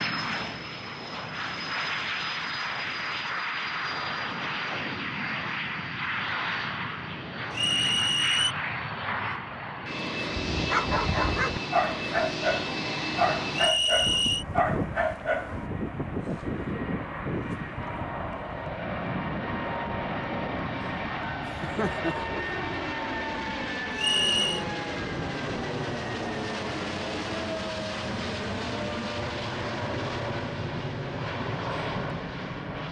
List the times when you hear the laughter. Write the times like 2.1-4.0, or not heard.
21.4-22.4.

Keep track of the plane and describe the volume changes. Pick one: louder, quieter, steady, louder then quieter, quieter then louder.
steady.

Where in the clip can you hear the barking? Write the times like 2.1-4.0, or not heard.
10.2-15.7.